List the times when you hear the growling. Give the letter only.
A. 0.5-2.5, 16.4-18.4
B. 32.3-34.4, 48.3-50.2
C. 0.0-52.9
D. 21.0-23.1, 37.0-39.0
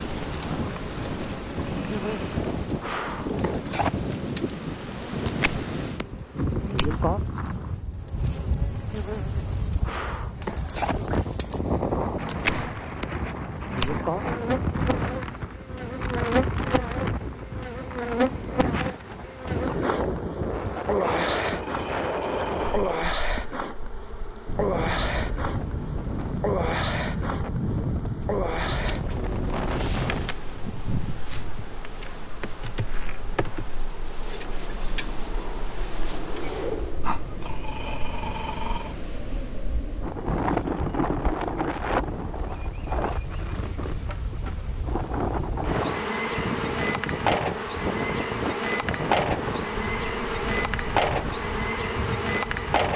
D.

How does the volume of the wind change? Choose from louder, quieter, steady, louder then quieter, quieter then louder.
steady.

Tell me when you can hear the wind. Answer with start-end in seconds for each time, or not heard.
0.0-52.9.